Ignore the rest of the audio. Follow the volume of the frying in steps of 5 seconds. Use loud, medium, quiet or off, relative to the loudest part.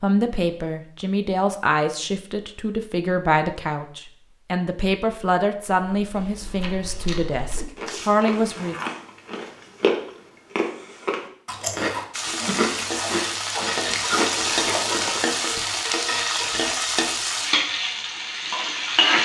off, off, loud, loud.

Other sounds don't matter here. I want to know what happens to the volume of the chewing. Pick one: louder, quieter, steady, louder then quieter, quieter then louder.
louder.